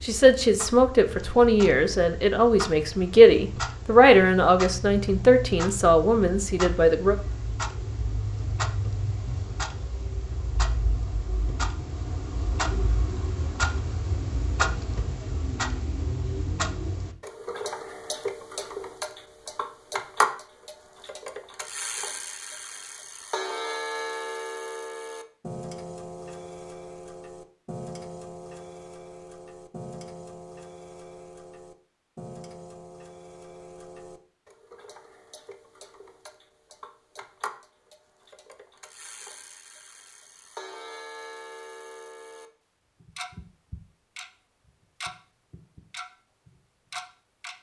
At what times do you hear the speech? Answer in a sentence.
The speech can be heard from 0.0 to 7.2 s.